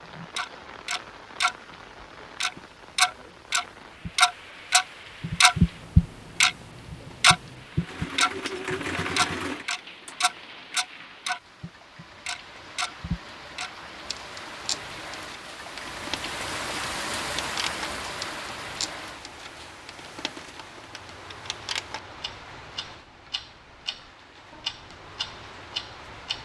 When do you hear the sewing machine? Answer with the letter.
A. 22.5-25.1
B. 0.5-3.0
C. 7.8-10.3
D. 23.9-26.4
C.